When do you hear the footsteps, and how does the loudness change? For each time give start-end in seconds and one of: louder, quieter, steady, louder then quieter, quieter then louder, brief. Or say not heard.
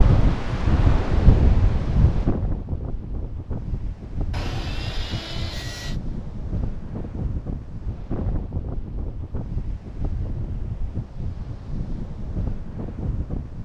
not heard.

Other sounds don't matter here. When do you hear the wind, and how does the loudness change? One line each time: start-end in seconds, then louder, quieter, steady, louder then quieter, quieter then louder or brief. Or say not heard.
0.0-13.6 quieter.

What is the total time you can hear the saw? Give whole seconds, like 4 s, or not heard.
2 s.